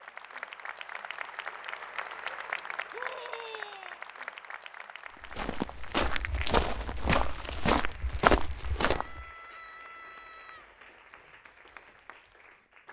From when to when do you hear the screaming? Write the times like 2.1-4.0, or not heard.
2.9-4.0, 8.9-10.7.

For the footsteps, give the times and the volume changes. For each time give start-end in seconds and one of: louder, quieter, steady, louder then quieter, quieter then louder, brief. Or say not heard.
5.2-9.2 louder.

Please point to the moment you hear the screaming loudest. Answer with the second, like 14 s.
3 s.